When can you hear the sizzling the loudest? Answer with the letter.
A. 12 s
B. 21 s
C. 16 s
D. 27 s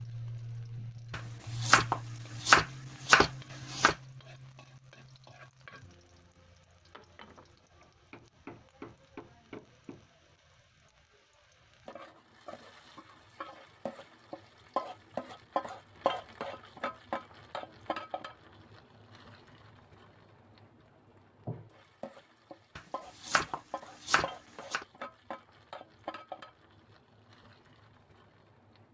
C.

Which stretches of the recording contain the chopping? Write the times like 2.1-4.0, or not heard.
1.1-4.0, 22.8-24.9.